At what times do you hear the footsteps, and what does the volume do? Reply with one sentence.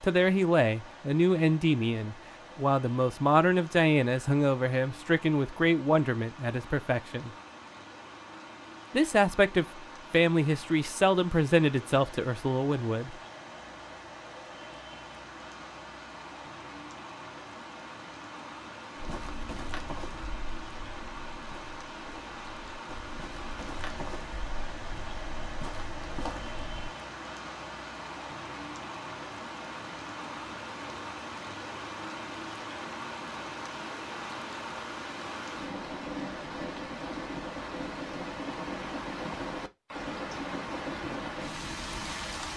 The footsteps can be heard from 18.9 to 26.9 s, getting quieter then louder.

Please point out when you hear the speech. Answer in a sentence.
The speech can be heard from 0.0 to 7.3 s and from 8.9 to 13.2 s.